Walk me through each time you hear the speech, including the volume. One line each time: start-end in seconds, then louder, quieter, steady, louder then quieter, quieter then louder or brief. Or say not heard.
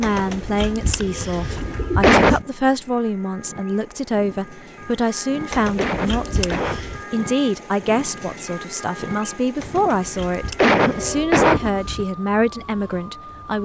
0.0-13.6 steady.